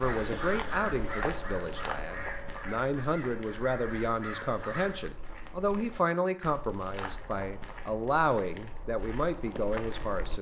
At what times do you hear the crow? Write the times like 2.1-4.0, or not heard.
0.0-5.1.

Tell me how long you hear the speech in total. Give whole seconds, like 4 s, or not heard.
10 s.